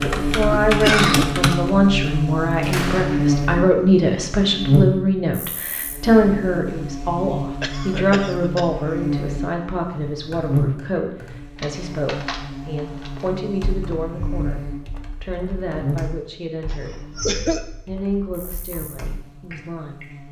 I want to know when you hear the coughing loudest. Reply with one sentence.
The volume of the coughing peaks at 1 second.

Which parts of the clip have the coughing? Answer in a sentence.
The coughing can be heard from 0.8 to 1.2 s, from 7.6 to 8.7 s and from 16.6 to 17.6 s.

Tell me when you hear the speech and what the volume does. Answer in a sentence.
The speech can be heard from 0.0 to 17.1 s, getting quieter; and briefly from 17.9 to 20.2 s.